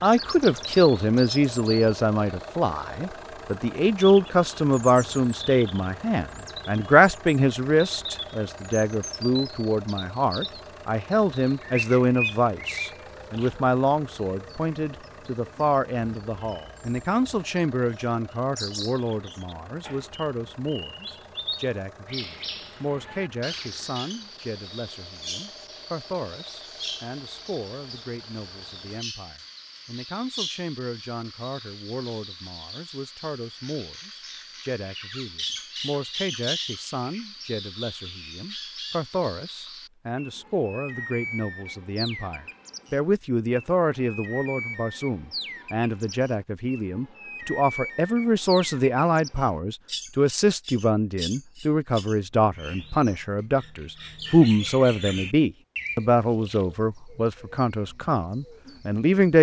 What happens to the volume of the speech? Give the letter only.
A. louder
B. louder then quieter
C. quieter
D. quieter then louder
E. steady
D.